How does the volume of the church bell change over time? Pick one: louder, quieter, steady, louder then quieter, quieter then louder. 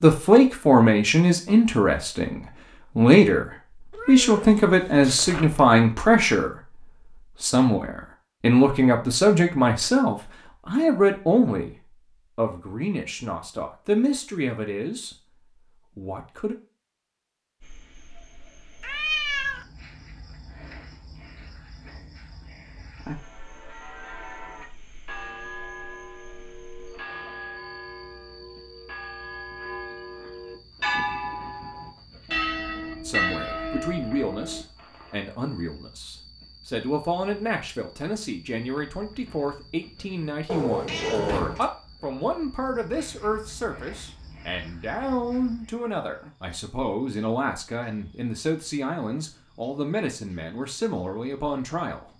louder.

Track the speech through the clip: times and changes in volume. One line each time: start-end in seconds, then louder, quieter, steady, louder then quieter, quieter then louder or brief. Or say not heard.
0.0-15.2 quieter
15.9-16.6 brief
33.0-52.1 steady.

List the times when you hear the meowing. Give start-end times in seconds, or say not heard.
3.9-5.8, 18.8-19.6, 40.5-41.6.